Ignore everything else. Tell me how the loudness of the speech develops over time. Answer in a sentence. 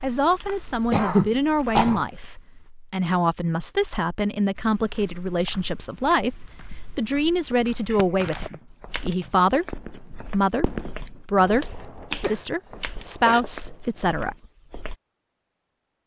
The volume of the speech stays about the same.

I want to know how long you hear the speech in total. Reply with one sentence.
You can hear the speech for 14 seconds altogether.